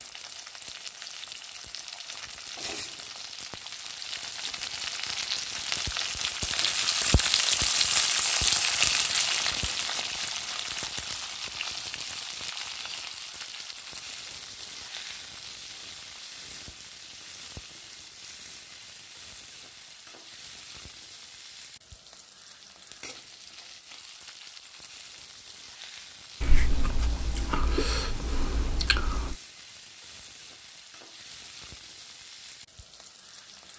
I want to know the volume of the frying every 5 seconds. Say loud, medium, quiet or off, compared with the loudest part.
quiet, loud, medium, quiet, quiet, quiet, quiet.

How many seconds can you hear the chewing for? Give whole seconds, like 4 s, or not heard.
3 s.